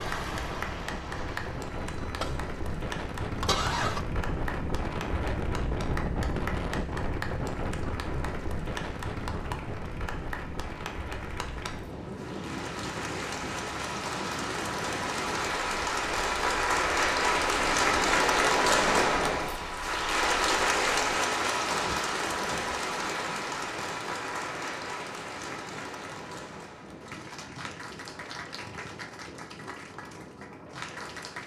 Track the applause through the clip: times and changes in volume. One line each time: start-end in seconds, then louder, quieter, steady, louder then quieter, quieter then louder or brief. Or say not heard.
0.0-31.4 louder then quieter.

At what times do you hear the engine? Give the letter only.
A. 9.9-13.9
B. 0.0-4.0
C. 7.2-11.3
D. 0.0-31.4
B.